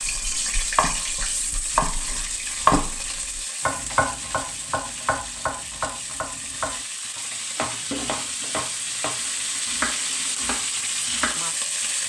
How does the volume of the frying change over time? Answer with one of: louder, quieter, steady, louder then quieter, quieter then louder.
quieter then louder.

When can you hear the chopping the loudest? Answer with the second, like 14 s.
3 s.